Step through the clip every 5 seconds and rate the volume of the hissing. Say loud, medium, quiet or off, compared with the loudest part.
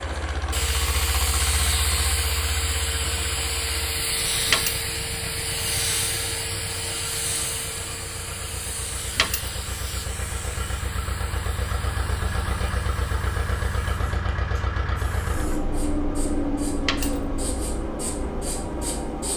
loud, loud, quiet, quiet.